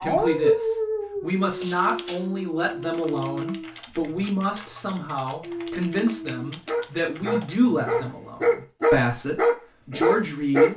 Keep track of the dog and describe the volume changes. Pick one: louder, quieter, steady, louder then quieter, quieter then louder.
quieter then louder.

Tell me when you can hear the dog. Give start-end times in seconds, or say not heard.
0.0-3.7, 5.4-10.7.